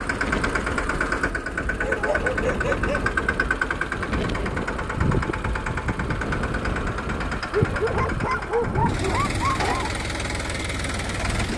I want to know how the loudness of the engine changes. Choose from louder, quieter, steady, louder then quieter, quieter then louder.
steady.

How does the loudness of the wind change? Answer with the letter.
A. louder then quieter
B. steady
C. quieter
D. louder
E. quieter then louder
B.